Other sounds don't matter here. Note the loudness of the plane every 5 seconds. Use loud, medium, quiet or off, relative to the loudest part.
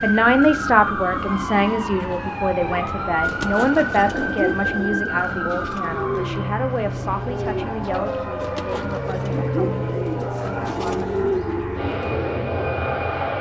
medium, loud, loud.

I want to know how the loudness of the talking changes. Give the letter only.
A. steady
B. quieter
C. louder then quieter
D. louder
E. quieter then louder
B.